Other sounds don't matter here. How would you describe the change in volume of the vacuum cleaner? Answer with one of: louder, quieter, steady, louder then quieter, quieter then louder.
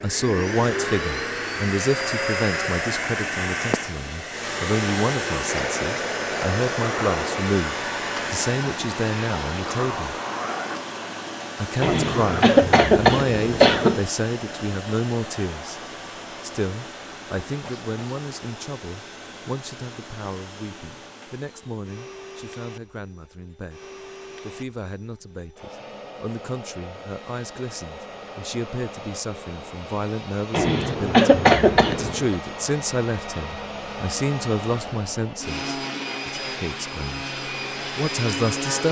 quieter then louder.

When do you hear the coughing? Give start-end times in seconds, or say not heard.
11.8-14.0, 30.5-32.4.